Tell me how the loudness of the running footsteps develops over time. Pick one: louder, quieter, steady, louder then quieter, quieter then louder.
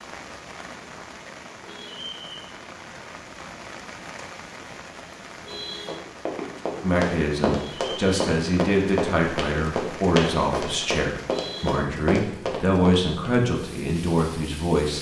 steady.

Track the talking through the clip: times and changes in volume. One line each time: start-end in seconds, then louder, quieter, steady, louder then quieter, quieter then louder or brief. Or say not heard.
6.8-14.9 steady.